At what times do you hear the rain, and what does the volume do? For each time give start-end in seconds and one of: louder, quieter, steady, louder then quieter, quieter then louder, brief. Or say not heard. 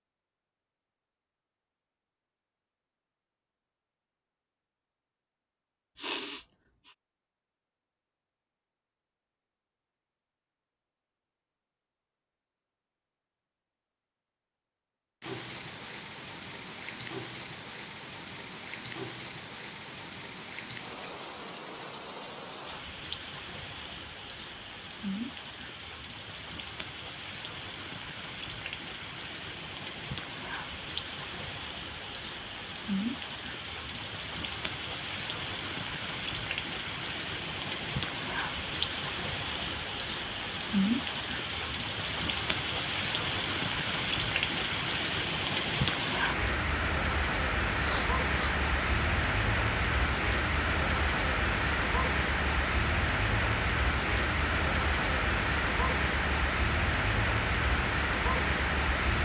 15.2-59.1 louder.